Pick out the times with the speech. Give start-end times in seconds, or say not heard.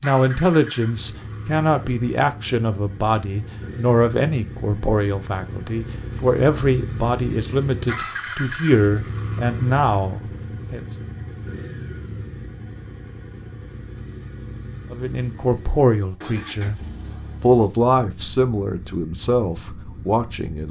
0.0-10.9, 14.9-16.8, 17.4-20.6.